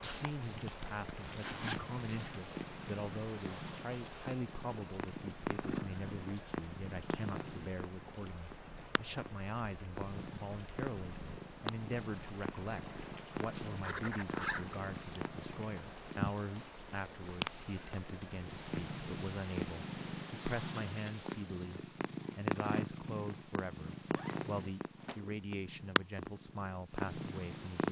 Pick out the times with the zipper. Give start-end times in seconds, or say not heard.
0.8-2.4, 13.5-15.2, 24.1-25.3.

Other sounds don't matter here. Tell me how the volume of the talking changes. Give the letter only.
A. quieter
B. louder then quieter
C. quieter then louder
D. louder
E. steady
E.